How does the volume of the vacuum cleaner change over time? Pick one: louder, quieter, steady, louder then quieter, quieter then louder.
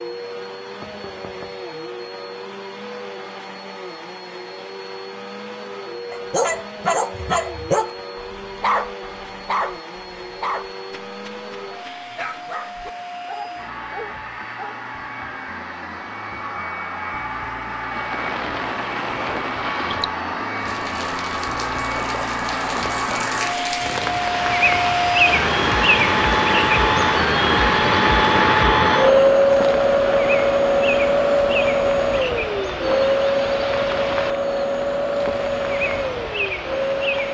louder.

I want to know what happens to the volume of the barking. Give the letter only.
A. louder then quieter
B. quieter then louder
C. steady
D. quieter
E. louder
D.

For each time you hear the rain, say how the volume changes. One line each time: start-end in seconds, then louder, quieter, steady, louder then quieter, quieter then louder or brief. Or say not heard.
17.8-37.2 louder then quieter.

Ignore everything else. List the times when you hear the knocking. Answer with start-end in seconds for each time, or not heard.
0.8-1.6.